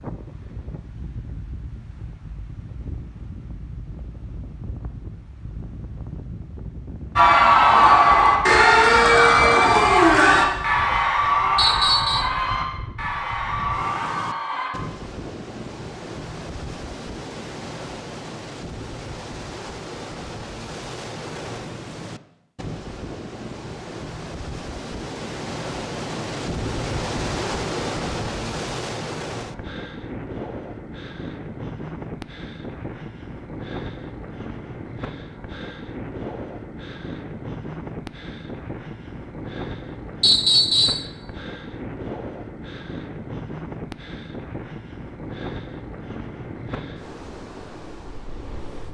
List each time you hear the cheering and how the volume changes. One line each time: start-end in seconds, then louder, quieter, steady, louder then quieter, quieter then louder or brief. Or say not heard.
7.2-14.7 quieter.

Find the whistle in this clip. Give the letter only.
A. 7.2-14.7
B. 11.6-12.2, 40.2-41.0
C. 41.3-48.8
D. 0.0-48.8
B.